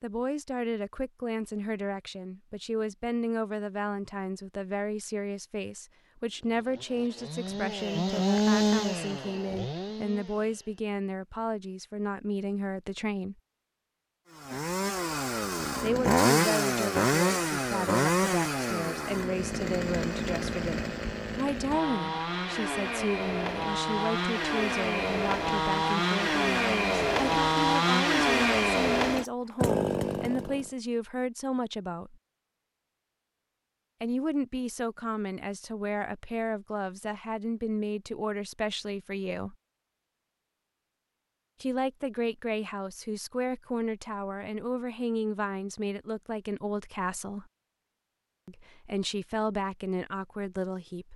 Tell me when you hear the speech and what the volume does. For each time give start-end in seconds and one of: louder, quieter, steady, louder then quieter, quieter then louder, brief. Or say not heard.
0.0-13.3 steady
15.8-32.1 steady
34.0-39.5 steady
41.6-47.5 steady
48.5-51.1 brief.